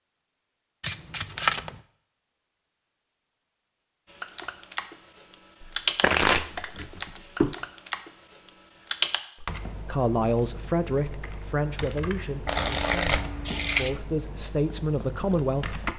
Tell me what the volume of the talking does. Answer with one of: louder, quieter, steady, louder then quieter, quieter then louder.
quieter then louder.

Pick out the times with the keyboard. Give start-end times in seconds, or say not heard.
4.1-15.9.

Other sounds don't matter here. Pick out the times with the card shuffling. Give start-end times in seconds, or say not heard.
0.8-1.8, 5.6-7.5, 12.4-14.0.